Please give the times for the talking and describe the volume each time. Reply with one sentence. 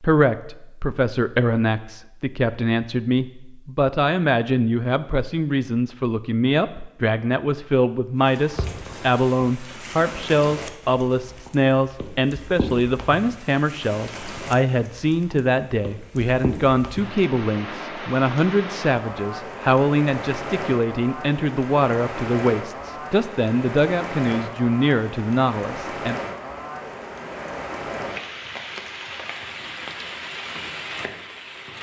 The talking can be heard from 0.0 to 26.1 s, at a steady volume.